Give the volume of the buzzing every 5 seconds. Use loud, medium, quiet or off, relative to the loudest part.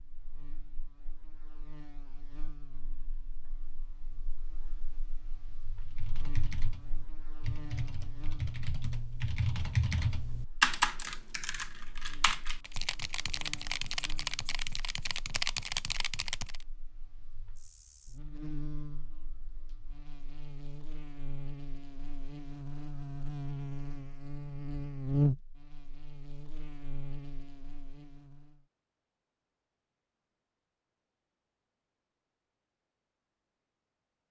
quiet, quiet, quiet, quiet, medium, loud, off.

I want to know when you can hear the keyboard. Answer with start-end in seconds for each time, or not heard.
5.8-16.6.